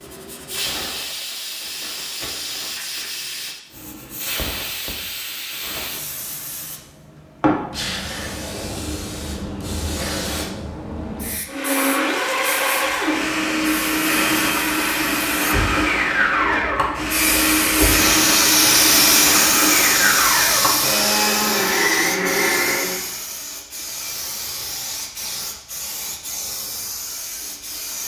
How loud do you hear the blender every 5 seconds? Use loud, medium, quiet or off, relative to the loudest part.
off, off, loud, loud, loud, off.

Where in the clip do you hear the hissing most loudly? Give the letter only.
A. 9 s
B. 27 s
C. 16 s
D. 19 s
D.